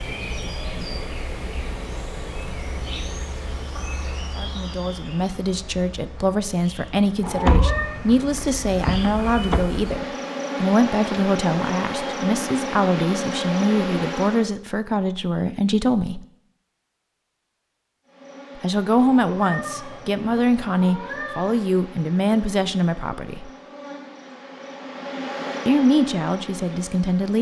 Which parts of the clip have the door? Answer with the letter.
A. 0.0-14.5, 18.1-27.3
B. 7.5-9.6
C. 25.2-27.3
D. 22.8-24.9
B.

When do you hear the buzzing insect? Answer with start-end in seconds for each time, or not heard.
0.0-14.5, 18.1-27.3.